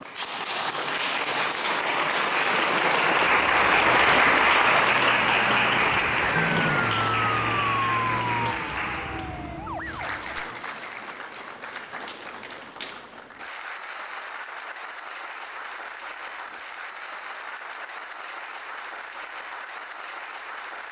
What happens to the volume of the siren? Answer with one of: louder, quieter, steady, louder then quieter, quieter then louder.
louder then quieter.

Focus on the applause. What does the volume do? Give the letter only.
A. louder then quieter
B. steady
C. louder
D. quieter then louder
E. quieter
E.